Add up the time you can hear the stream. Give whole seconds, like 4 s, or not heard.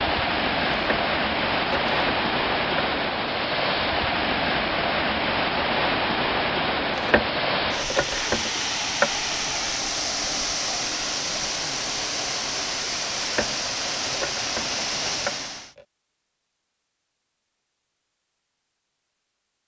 16 s.